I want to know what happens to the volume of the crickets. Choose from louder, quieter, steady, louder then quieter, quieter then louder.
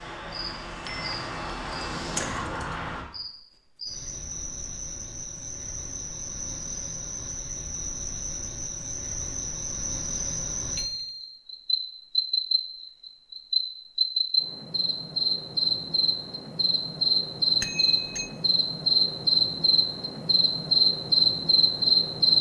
louder.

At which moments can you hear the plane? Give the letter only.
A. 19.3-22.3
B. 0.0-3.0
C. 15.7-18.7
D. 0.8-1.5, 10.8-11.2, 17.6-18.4
B.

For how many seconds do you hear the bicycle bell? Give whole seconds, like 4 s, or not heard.
2 s.